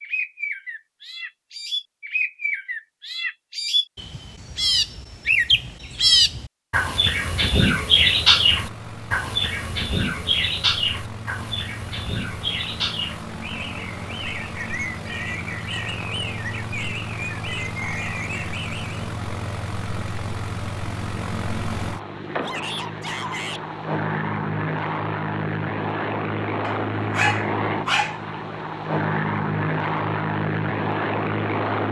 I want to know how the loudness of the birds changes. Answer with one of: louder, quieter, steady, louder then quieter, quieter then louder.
louder then quieter.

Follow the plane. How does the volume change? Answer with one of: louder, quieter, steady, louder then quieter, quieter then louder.
louder.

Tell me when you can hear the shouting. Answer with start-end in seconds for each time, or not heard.
22.4-23.6.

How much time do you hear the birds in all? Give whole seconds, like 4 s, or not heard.
19 s.